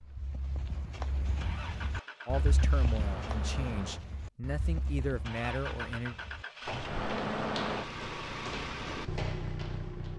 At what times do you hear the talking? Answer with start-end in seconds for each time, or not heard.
2.2-6.2.